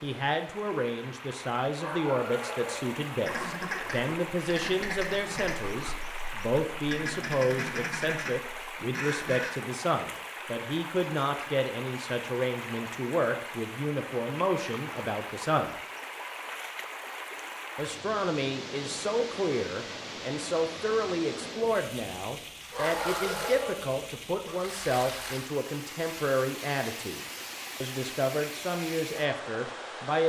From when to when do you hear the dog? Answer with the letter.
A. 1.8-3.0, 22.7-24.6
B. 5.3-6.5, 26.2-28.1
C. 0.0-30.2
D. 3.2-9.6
A.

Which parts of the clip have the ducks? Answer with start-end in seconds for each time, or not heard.
3.2-9.6.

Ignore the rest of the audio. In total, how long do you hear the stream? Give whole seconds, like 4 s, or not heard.
30 s.